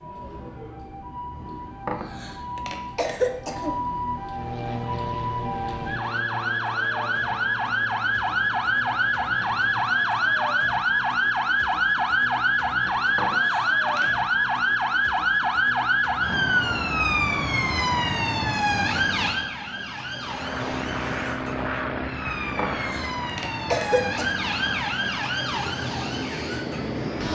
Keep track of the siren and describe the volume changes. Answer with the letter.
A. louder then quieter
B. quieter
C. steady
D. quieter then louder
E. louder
A.